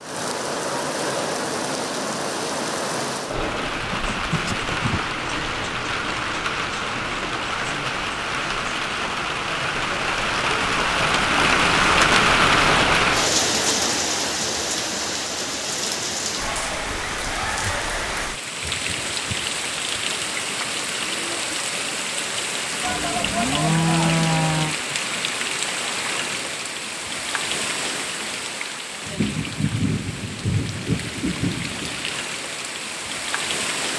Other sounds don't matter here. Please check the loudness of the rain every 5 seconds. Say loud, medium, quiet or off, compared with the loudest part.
medium, medium, loud, medium, medium, medium, medium.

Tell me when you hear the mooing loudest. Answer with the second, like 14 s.
24 s.